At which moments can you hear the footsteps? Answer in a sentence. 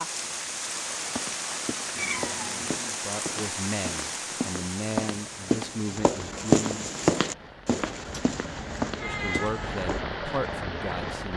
You can hear the footsteps from 0.9 to 10.0 s.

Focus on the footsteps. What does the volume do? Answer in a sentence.
The loudness of the footsteps goes up, then down.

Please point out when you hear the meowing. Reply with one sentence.
You can hear the meowing from 1.9 to 2.8 s and from 8.0 to 9.7 s.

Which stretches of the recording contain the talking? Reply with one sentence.
The talking can be heard from 2.8 to 6.9 s and from 8.9 to 11.3 s.